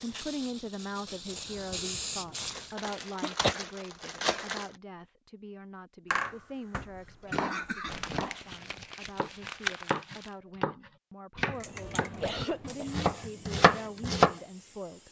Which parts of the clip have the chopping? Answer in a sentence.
The chopping can be heard from 7.2 to 14.3 s.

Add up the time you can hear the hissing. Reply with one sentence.
You can hear the hissing for 6 seconds altogether.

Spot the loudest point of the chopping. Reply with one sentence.
The loudest moment of the chopping is at 14 seconds.